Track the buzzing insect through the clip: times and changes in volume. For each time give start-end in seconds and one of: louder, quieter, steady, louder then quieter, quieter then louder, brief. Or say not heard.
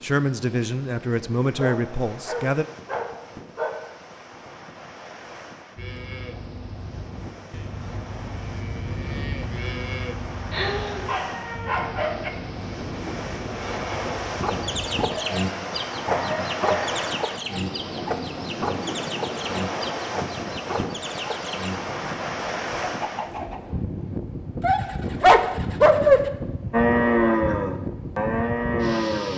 not heard.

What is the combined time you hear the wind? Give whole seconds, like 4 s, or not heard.
29 s.